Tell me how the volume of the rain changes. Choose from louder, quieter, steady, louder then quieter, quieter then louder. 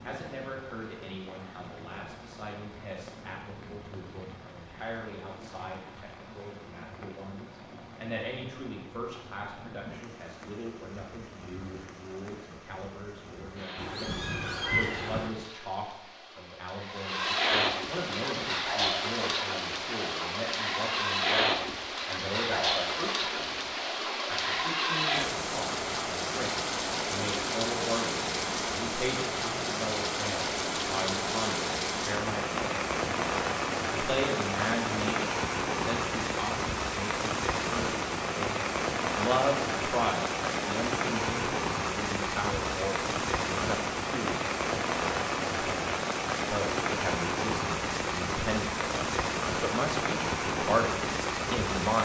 louder.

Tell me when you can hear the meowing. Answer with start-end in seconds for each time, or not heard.
13.8-15.3.